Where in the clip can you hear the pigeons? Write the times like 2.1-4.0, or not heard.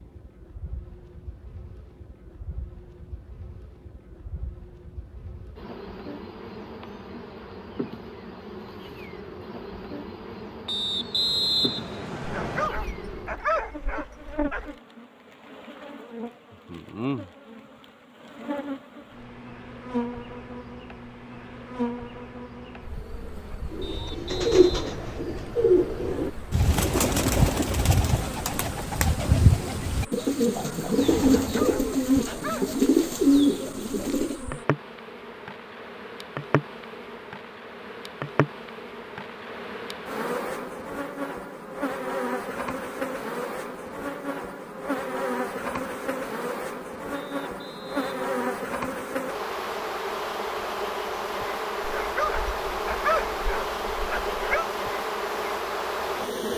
23.7-34.4.